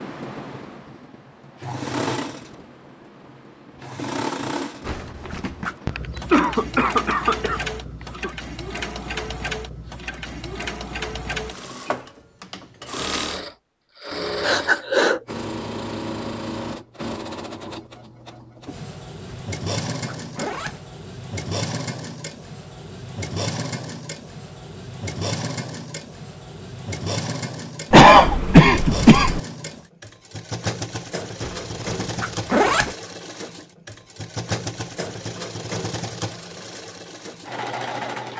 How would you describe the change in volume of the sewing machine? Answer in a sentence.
The loudness of the sewing machine stays about the same.